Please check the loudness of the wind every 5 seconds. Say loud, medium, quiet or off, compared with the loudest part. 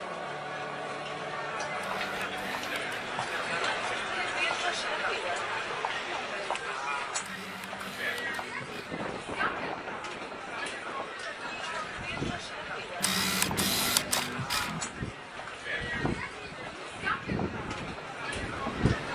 off, loud, medium, loud.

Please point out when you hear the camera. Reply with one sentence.
You can hear the camera from 1.8 to 3.6 s, from 7.2 to 9.0 s and from 13.0 to 14.8 s.